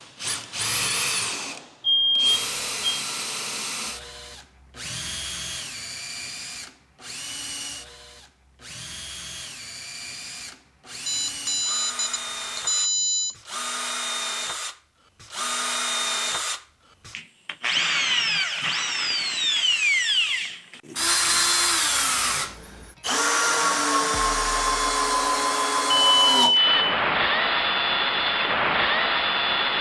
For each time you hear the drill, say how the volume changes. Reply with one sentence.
You can hear the drill from 0.0 to 29.7 s, getting quieter then louder.